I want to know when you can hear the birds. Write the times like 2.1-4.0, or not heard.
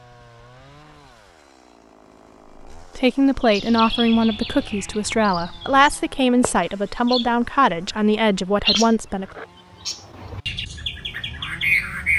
3.4-12.1.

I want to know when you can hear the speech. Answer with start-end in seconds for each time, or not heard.
2.8-9.2.